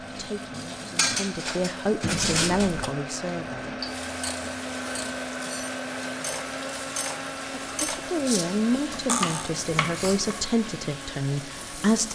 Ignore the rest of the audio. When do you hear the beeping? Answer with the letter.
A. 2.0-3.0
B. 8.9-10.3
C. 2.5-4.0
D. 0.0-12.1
A.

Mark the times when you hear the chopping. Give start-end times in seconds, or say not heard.
8.9-10.3.